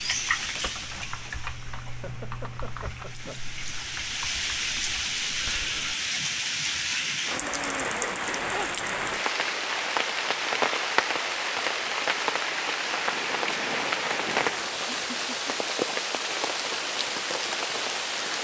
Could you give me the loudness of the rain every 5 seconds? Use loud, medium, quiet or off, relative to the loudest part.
medium, loud, loud, loud.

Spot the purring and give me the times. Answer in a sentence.
The purring can't be heard in this clip.